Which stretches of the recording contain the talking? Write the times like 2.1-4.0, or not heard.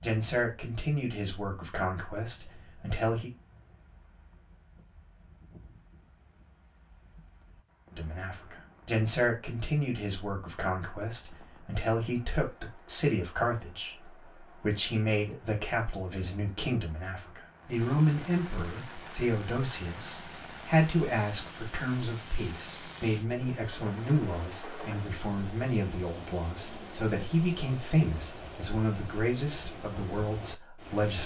0.0-3.3, 7.9-31.2.